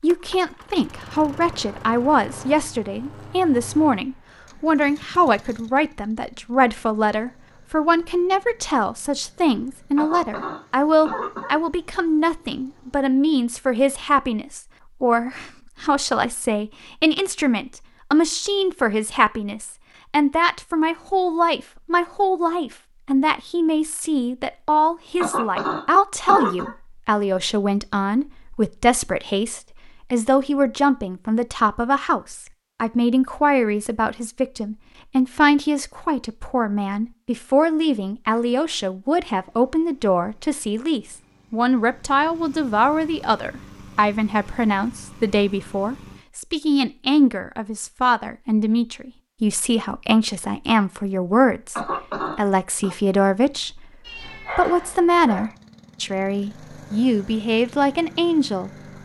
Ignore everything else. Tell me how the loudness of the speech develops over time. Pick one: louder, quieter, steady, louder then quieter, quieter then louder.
steady.